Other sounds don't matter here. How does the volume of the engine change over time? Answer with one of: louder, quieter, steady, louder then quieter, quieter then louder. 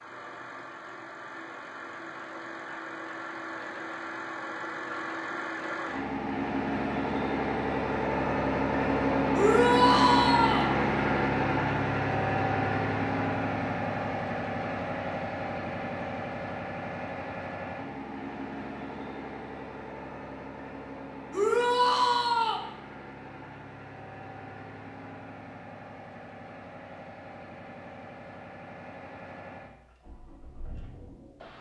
louder then quieter.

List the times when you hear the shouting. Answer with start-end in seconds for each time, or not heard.
9.3-10.7, 21.3-22.6.